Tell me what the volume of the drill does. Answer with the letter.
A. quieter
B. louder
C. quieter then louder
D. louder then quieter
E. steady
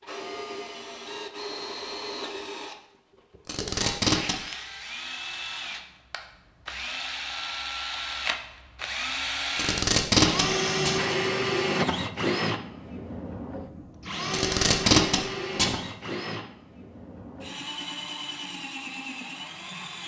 D.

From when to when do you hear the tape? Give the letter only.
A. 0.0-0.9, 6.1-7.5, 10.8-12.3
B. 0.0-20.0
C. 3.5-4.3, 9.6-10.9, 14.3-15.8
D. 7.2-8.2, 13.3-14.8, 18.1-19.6
C.